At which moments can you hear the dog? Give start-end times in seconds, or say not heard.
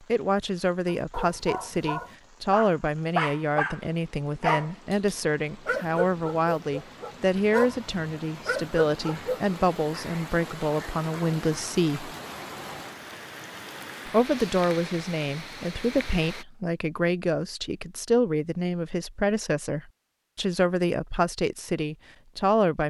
0.8-9.4.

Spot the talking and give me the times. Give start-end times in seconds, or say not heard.
0.1-12.1, 14.1-22.8.